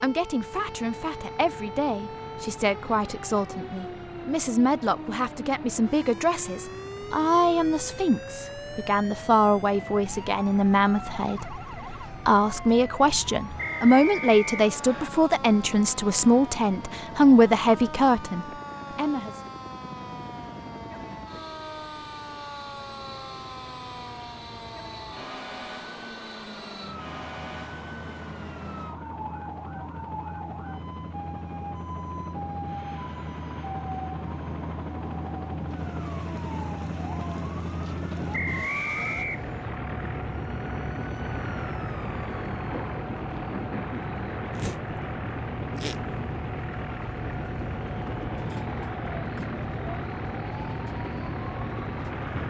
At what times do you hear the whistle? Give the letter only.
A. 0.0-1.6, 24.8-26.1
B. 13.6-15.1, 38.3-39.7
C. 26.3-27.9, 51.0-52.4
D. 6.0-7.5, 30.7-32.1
B.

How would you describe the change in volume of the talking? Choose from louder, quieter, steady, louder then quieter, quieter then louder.
louder.